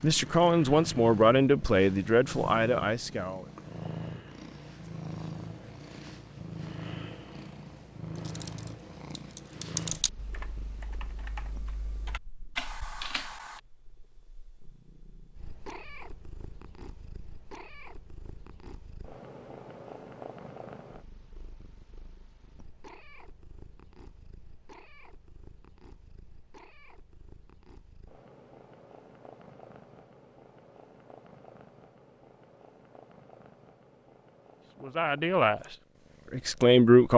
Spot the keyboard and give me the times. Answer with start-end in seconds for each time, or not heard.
8.2-13.6.